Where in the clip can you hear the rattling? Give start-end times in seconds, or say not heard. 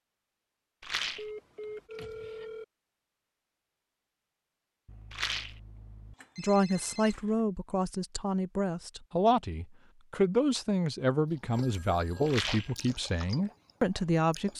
0.8-1.3, 5.1-5.6, 12.2-12.8.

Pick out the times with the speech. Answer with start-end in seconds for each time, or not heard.
6.3-14.5.